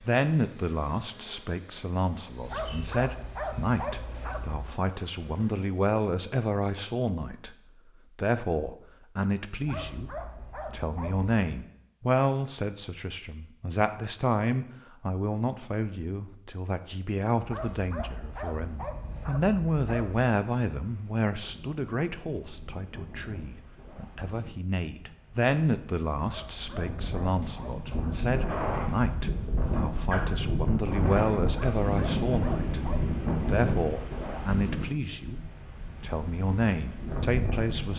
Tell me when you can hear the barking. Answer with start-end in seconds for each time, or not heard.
2.4-4.7, 9.6-11.3, 17.4-20.3, 26.2-28.3, 31.4-33.1.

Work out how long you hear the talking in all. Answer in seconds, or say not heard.
36 s.